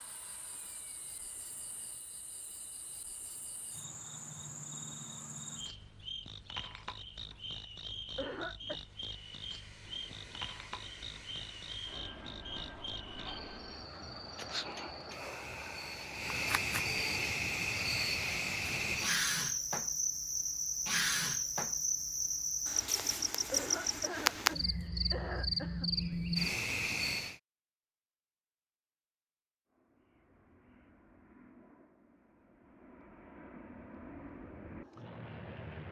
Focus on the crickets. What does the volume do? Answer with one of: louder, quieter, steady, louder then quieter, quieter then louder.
louder.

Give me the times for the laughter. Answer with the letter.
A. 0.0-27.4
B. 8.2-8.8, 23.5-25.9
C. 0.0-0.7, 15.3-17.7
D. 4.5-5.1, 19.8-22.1
B.